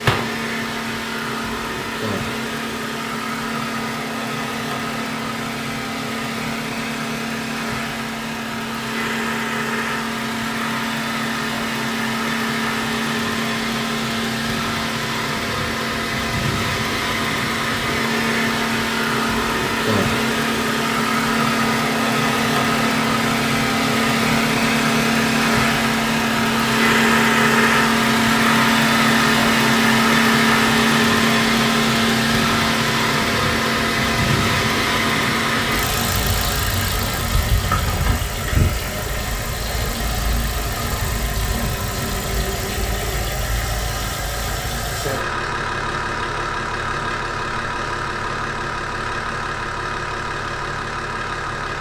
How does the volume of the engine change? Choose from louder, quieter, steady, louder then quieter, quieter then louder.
louder then quieter.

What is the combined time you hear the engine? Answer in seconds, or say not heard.
52 s.